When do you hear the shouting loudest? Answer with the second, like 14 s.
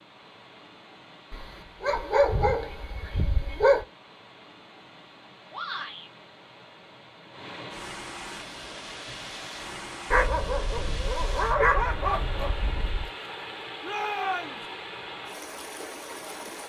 14 s.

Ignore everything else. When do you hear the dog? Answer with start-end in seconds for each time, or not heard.
1.3-3.9, 10.1-13.1.